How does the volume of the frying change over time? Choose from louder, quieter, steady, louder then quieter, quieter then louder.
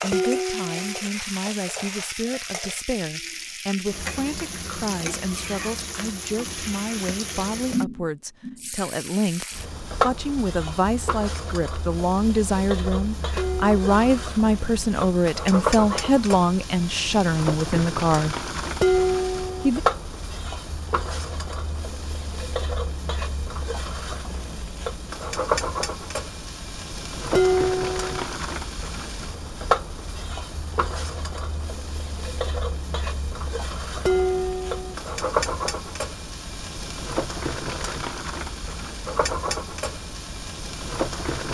steady.